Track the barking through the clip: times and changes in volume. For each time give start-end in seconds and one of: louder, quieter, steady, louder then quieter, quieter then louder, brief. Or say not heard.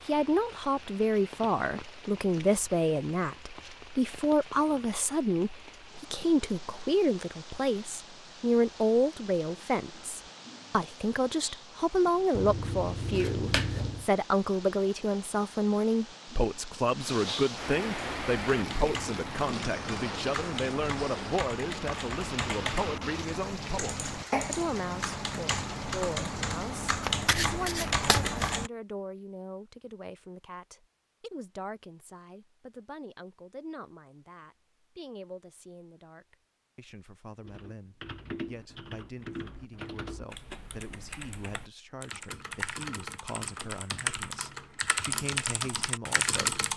not heard.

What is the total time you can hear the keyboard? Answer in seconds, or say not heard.
20 s.